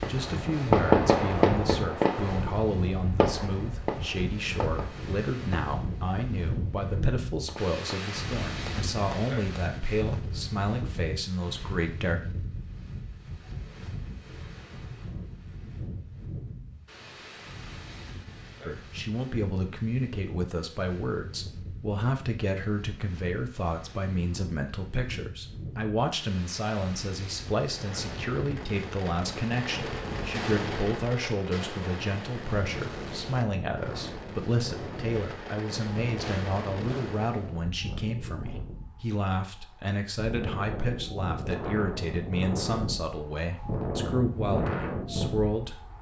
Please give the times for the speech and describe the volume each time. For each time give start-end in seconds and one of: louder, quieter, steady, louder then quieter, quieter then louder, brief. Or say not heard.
0.1-12.2 steady
18.6-45.9 steady.